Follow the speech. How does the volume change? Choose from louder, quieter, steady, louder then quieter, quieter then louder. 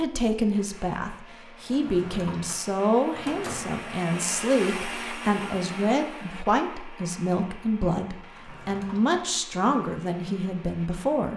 steady.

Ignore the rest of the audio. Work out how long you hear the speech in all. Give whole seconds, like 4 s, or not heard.
11 s.